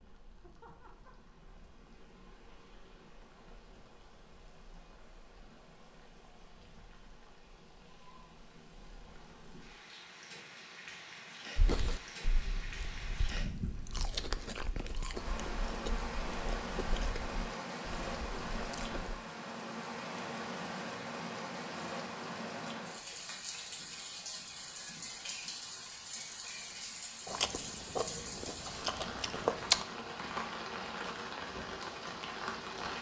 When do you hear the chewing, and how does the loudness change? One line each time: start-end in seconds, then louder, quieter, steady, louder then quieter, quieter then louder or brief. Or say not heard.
11.6-19.1 louder then quieter
27.2-29.9 brief.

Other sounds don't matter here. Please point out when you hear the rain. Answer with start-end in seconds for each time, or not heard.
0.0-32.9.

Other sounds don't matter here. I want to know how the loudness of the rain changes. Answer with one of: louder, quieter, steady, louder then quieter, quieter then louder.
louder.